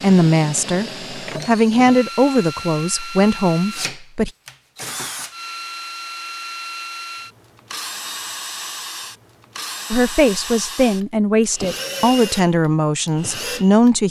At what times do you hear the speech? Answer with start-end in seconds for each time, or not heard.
0.0-4.3, 9.9-14.0.